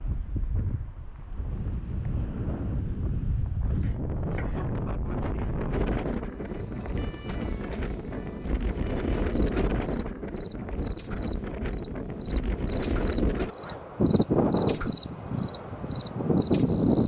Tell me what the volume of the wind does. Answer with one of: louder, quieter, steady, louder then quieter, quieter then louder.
louder.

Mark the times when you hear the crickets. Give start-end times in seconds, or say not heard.
6.3-17.0.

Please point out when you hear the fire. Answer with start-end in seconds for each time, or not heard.
not heard.